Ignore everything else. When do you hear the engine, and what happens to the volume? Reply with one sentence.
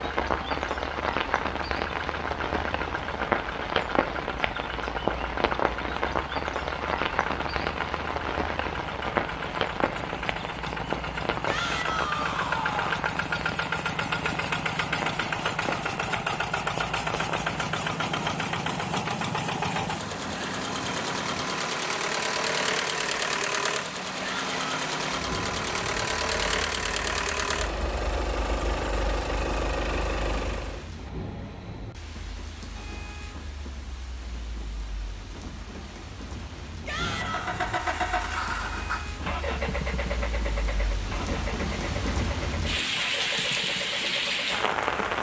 You can hear the engine from 0.0 to 30.9 s, getting louder; and from 37.0 to 44.9 s, getting quieter.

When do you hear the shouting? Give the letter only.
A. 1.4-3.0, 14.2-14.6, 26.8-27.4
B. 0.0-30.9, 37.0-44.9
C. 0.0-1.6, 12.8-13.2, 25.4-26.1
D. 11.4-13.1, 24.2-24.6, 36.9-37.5
D.